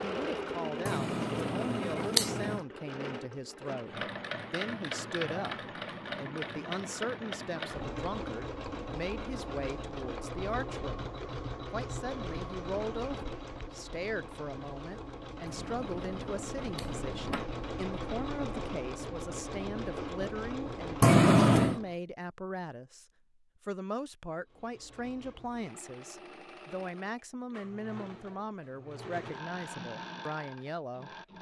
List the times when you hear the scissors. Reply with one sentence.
The scissors can be heard from 0.8 to 2.6 s, from 15.4 to 17.4 s and from 21.0 to 21.8 s.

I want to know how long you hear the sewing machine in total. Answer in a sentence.
The sewing machine can be heard for 29 seconds in total.